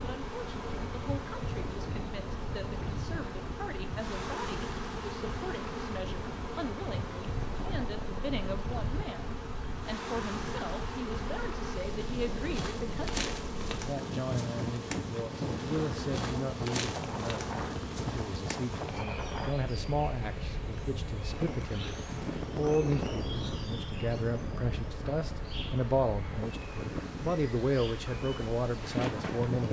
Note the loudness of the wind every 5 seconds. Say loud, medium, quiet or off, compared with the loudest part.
medium, medium, loud, loud, loud, loud.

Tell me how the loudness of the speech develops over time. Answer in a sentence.
The volume of the speech goes up.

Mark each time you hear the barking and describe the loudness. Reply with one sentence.
You can't hear the barking here.